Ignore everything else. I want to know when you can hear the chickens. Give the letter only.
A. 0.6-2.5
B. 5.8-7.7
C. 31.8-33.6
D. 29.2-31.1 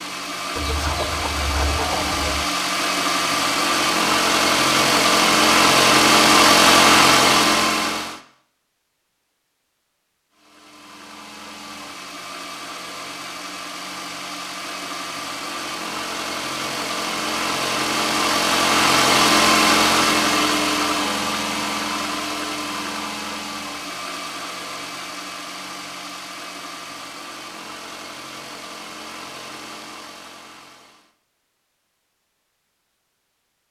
A.